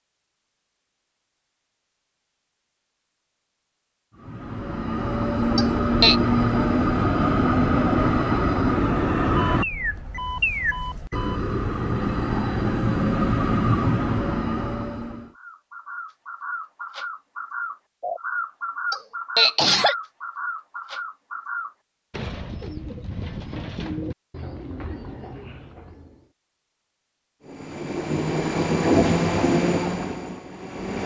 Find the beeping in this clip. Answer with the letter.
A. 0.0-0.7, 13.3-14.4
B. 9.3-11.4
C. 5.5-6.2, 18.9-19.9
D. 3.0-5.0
B.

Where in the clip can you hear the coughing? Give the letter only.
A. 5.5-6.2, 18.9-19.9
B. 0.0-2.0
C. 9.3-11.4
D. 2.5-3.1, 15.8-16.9
A.